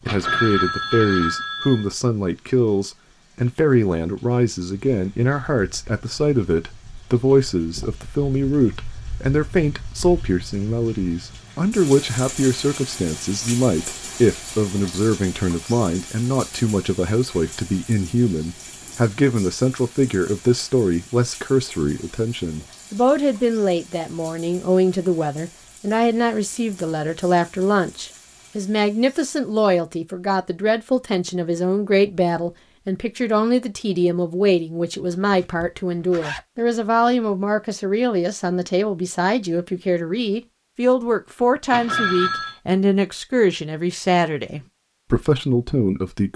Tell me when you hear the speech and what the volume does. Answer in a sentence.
The speech can be heard from 0.1 to 46.3 s, at a steady volume.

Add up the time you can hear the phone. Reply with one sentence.
You can hear the phone for 3 seconds altogether.